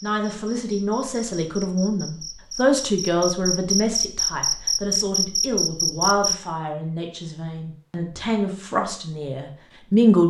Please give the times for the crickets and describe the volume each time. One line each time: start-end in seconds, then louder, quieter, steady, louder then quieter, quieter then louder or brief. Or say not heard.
0.0-6.3 louder.